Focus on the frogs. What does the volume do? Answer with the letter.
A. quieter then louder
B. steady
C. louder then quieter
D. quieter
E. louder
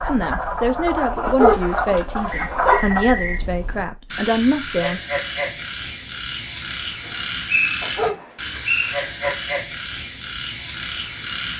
B.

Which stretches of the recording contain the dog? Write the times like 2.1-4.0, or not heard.
1.2-2.8, 7.8-9.3.